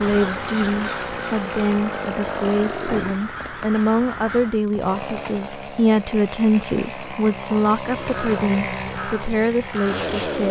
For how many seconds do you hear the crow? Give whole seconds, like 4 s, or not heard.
7 s.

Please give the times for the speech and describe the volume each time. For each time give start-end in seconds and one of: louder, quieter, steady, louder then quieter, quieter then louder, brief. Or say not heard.
0.0-10.4 steady.